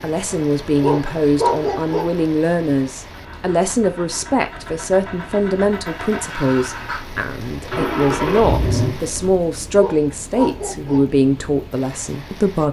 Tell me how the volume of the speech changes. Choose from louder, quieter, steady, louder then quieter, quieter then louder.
steady.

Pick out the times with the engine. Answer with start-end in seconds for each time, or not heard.
0.1-9.4.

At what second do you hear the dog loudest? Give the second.
2 s.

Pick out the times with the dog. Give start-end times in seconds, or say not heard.
0.8-2.0, 9.7-11.0.